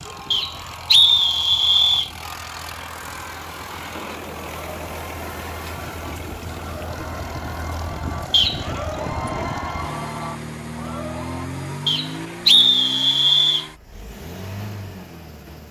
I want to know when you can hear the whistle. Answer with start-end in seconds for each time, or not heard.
0.3-2.1, 8.3-8.8, 11.8-13.7.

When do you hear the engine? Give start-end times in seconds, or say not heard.
0.0-15.6.